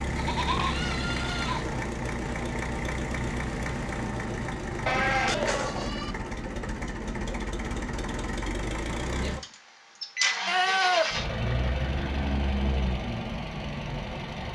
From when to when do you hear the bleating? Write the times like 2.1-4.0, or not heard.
0.1-1.6, 4.8-6.2, 10.4-11.2.